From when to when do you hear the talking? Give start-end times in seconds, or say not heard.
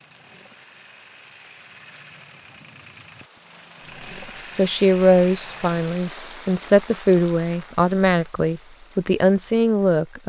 4.5-10.2.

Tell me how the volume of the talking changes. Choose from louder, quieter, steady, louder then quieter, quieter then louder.
steady.